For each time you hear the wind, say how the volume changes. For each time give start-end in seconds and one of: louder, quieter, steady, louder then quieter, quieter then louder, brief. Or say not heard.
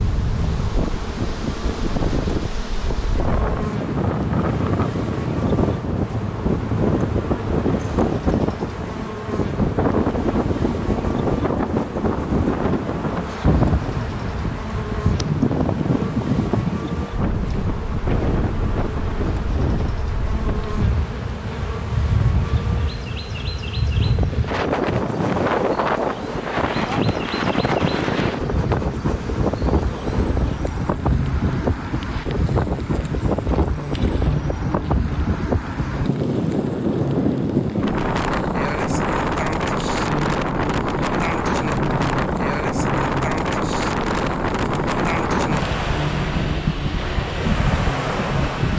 0.0-48.7 steady.